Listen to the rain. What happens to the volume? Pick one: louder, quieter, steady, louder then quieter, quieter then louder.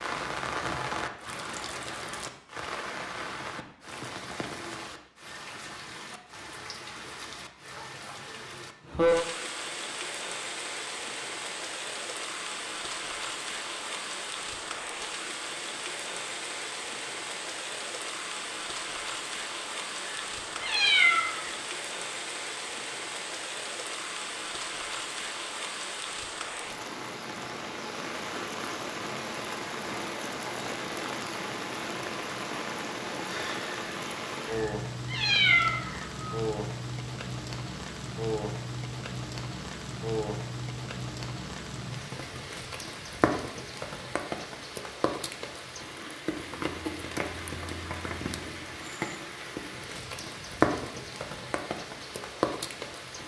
steady.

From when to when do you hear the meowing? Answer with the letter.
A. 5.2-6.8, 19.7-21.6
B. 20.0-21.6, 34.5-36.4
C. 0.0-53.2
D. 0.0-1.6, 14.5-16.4
B.